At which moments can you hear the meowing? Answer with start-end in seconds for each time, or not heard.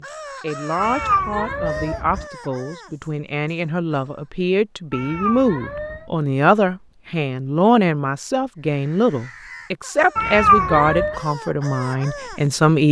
0.8-2.2, 4.9-6.1, 10.2-11.2.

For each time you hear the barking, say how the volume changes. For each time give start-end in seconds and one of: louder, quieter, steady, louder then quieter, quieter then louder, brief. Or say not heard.
not heard.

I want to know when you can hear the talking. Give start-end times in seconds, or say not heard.
0.0-12.8.